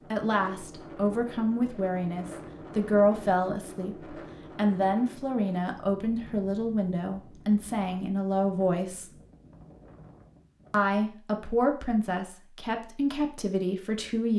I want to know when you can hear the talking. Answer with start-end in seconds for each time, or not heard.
0.0-9.2, 10.7-14.3.